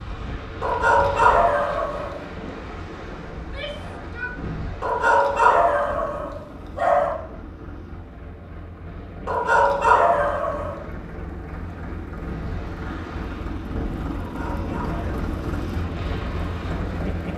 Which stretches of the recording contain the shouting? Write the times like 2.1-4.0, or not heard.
3.4-4.3.